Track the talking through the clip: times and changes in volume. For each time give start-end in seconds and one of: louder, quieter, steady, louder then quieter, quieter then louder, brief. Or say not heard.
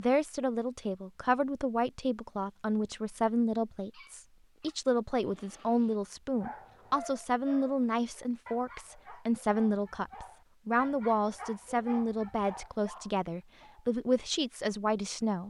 0.0-15.4 steady.